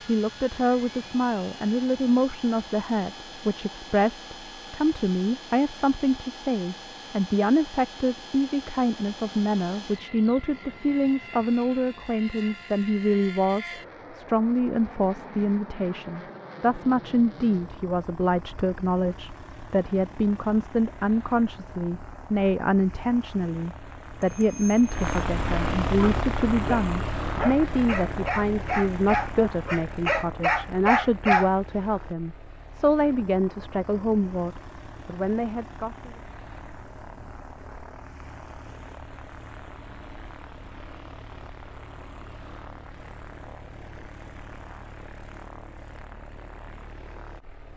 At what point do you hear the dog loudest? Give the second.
31 s.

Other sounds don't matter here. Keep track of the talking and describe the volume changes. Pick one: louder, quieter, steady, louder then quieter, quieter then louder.
steady.